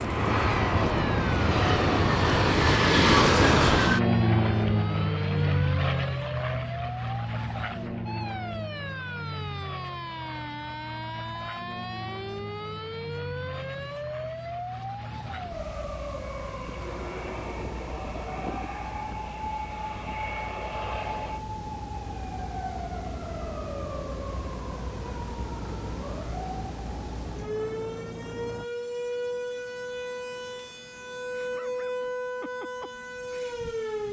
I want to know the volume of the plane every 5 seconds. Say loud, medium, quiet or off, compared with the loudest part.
loud, medium, quiet, quiet, quiet, quiet, off.